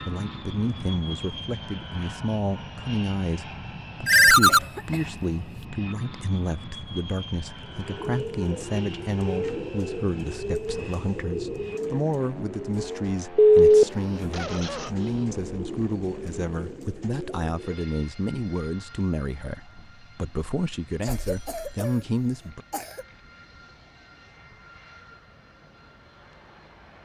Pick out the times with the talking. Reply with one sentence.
The talking can be heard from 0.0 to 22.6 s.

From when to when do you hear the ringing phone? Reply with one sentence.
The ringing phone can be heard from 4.0 to 4.6 s, from 13.3 to 14.3 s and from 21.3 to 21.8 s.